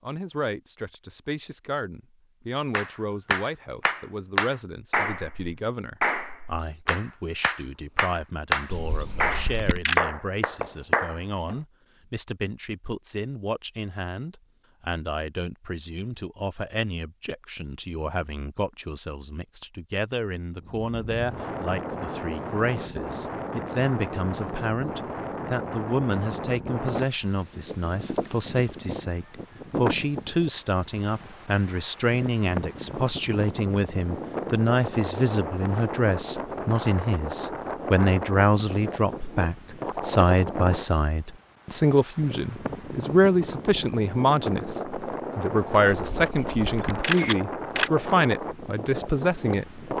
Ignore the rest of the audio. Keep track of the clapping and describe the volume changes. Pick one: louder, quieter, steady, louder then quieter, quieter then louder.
quieter then louder.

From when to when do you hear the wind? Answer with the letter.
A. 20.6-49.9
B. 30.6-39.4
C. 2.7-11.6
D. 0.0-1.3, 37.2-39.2
A.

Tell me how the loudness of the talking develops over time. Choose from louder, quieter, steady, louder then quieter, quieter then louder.
louder.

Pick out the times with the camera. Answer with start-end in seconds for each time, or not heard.
8.7-10.0, 45.9-47.9.